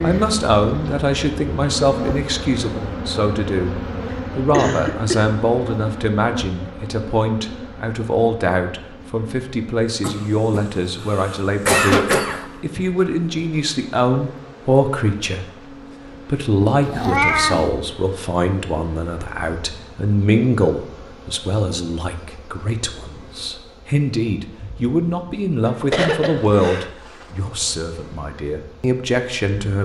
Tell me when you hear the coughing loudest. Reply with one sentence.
The loudest moment of the coughing is at 12 seconds.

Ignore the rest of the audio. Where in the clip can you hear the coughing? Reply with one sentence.
The coughing can be heard from 4.5 to 5.2 s, from 10.0 to 12.4 s and from 25.6 to 26.9 s.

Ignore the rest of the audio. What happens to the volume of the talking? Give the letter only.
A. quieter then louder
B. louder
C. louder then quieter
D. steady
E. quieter
D.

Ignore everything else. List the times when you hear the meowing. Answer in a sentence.
The meowing can be heard from 16.8 to 17.7 s.